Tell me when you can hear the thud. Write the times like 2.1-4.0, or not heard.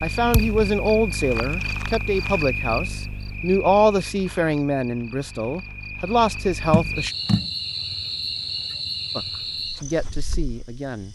0.3-0.8, 6.7-7.5.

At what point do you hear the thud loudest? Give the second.
7 s.